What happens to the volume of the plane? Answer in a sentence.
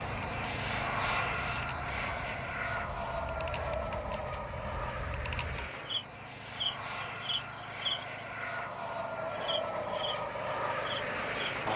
The volume of the plane goes down, then up.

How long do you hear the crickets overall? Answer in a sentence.
You can hear the crickets for 12 seconds altogether.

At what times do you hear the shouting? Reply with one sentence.
You can't hear the shouting here.